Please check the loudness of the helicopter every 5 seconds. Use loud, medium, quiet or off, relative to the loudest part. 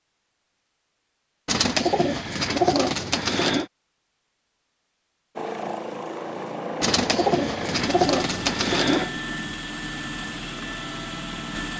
off, loud, loud.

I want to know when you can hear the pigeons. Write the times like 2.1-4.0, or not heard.
1.4-3.6, 6.8-9.1.